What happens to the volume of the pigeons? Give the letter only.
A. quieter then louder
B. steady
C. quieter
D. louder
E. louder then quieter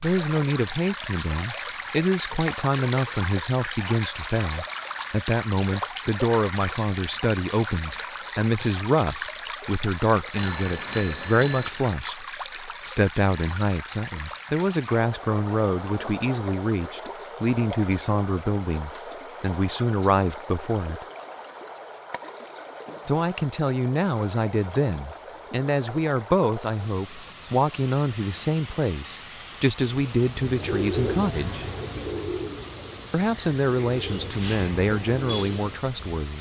A.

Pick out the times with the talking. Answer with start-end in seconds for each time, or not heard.
0.0-21.1, 23.1-31.7, 33.1-36.3.